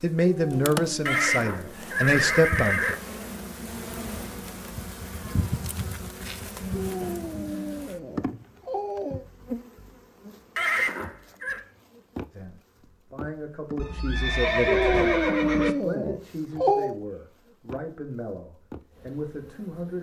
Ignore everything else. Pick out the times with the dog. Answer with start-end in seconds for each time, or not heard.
0.2-1.8, 6.7-9.2, 14.7-16.9.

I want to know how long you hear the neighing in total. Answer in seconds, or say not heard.
5 s.